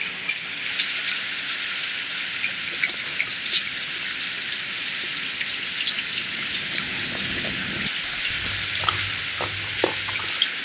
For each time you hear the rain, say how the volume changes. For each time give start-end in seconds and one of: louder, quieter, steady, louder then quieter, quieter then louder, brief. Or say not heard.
0.0-10.6 steady.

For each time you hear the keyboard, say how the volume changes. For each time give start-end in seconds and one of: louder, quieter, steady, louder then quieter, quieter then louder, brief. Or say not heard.
not heard.